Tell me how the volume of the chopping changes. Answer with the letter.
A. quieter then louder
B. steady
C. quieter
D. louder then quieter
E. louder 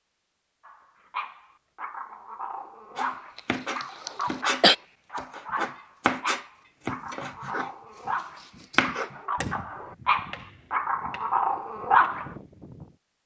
C.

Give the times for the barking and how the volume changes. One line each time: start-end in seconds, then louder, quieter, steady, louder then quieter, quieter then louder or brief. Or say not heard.
0.7-12.3 louder.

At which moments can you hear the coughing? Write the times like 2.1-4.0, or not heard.
3.4-4.8.